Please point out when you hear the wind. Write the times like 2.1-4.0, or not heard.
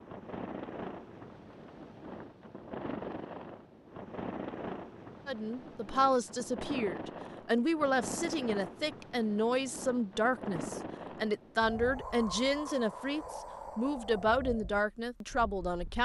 0.0-16.0.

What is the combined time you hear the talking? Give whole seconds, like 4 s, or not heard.
11 s.